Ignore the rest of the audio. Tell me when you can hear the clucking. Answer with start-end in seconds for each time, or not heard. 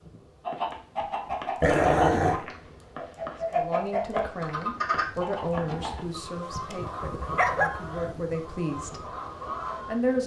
0.4-9.9.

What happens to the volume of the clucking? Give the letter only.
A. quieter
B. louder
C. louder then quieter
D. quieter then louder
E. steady
A.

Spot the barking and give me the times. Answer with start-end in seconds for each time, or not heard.
1.6-2.5, 5.7-7.7.